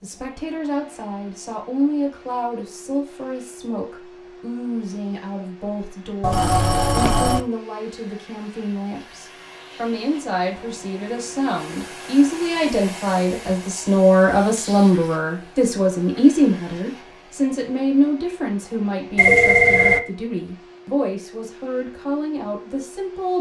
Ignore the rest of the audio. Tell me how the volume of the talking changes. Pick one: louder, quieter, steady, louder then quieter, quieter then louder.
louder then quieter.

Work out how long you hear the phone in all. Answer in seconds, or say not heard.
2 s.